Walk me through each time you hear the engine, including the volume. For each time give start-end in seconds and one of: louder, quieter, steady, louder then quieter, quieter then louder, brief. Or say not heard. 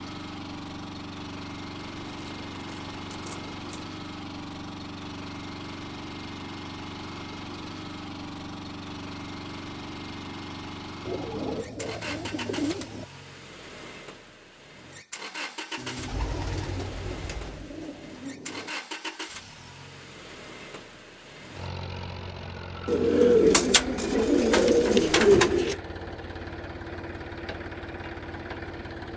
0.0-29.1 steady.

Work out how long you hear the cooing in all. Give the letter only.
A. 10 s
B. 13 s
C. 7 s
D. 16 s
A.